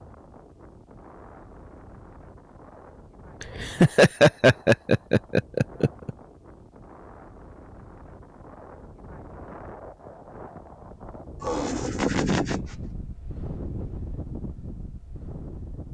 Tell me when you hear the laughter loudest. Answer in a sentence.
The volume of the laughter peaks at 4 seconds.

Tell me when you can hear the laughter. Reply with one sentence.
You can hear the laughter from 3.4 to 6.1 s and from 11.4 to 12.6 s.